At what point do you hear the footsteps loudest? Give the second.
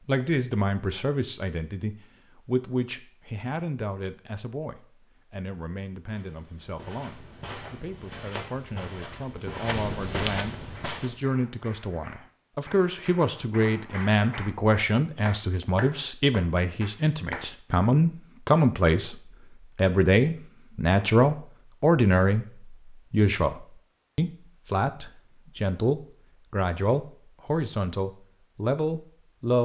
10 s.